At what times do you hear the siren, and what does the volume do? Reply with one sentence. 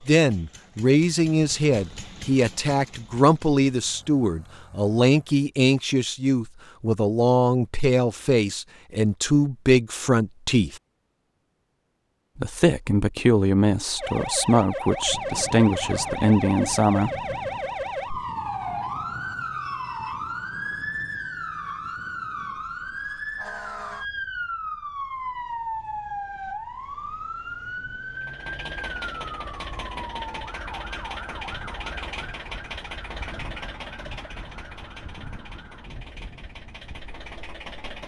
You can hear the siren from 13.9 to 35.9 s, getting quieter.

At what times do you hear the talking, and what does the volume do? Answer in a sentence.
The talking can be heard from 0.1 to 10.8 s, at a steady volume; and from 12.3 to 17.1 s, at a steady volume.